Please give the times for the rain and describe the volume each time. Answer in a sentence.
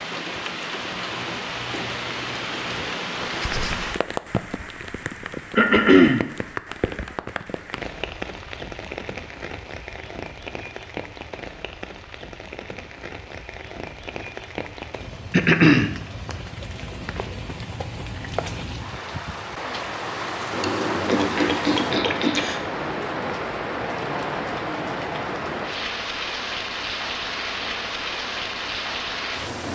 The rain can be heard from 0.0 to 29.7 s, getting quieter then louder.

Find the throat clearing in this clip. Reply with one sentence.
You can hear the throat clearing from 5.5 to 6.2 s, from 15.3 to 16.4 s and from 20.5 to 22.6 s.